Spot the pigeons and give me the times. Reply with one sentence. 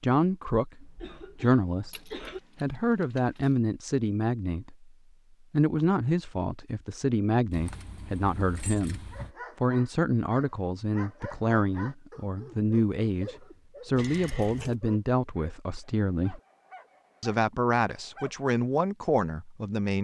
You can't hear the pigeons here.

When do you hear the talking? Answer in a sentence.
You can hear the talking from 0.0 to 4.9 s, from 5.5 to 16.4 s and from 17.2 to 20.0 s.